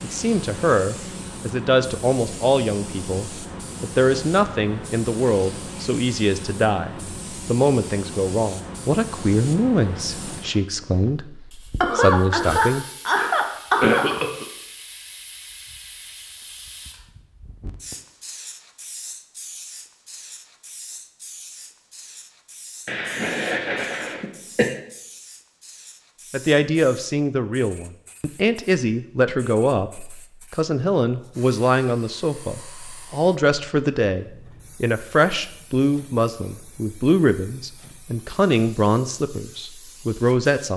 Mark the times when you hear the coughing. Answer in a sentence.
The coughing can be heard from 11.8 to 14.4 s and from 22.9 to 24.7 s.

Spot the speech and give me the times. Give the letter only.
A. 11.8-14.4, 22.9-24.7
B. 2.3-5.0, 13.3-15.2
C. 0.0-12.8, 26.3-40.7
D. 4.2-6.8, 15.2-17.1
C.